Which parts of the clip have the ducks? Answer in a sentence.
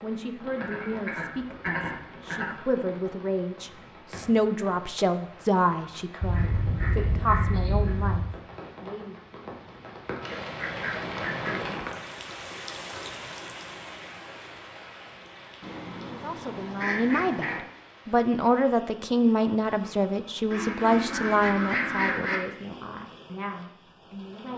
The ducks can be heard from 0.6 to 2.5 s, from 6.2 to 8.2 s, from 10.2 to 11.8 s, from 15.6 to 17.6 s and from 20.5 to 22.4 s.